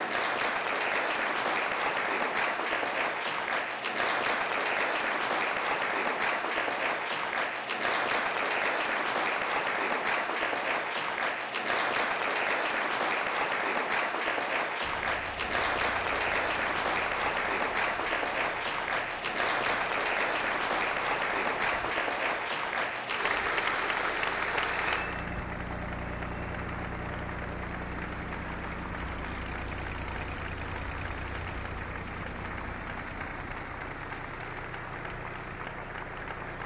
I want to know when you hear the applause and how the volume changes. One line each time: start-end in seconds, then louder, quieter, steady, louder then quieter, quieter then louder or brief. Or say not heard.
0.0-36.6 quieter.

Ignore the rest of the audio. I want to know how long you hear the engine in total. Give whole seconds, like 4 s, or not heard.
22 s.